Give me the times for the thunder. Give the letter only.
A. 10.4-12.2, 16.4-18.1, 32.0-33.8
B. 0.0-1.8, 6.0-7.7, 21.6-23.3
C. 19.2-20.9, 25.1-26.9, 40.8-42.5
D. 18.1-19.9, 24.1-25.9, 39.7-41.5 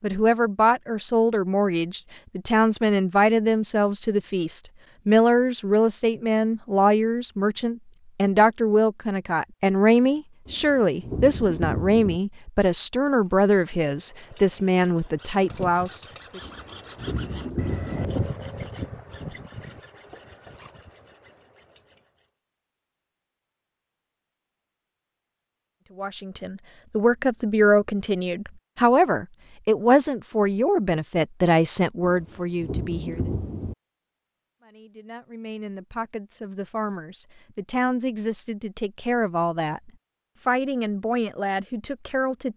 A.